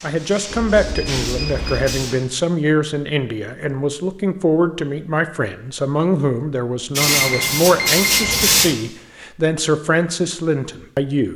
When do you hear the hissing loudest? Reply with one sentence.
The volume of the hissing peaks at 8 seconds.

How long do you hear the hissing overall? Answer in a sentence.
You can hear the hissing for 4 seconds altogether.